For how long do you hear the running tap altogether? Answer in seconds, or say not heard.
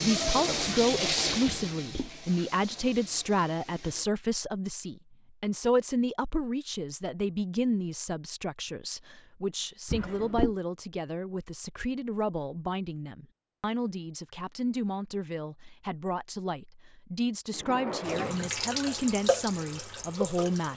7 s.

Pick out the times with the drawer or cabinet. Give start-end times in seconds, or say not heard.
1.4-2.1, 9.8-10.6, 17.5-18.5.